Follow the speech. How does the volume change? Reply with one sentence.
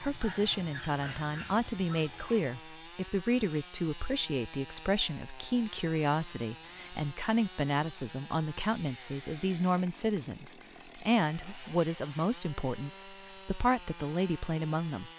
The volume of the speech stays about the same.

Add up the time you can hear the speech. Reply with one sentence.
The speech can be heard for 15 seconds in total.